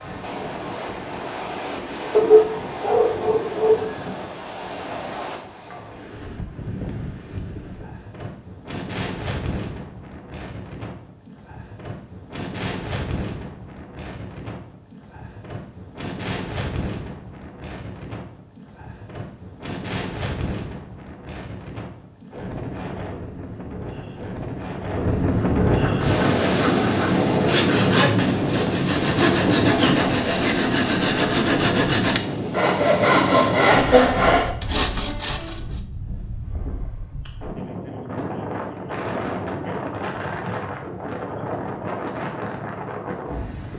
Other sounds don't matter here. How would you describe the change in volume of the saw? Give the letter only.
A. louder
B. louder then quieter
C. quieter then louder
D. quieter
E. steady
A.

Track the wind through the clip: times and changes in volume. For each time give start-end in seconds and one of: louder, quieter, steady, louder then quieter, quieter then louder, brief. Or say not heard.
0.0-43.7 louder then quieter.